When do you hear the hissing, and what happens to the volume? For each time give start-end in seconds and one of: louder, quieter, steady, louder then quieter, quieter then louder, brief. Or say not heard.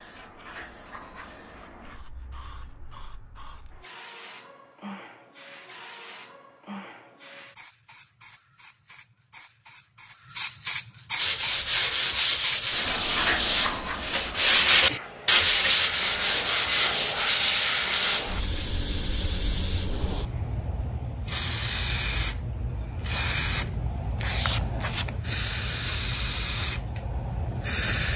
0.0-28.1 louder.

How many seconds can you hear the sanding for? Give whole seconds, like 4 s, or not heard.
7 s.